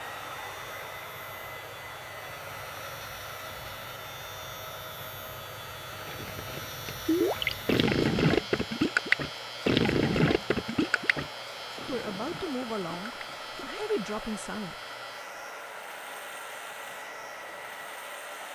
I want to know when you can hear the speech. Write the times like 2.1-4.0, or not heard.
11.8-14.8.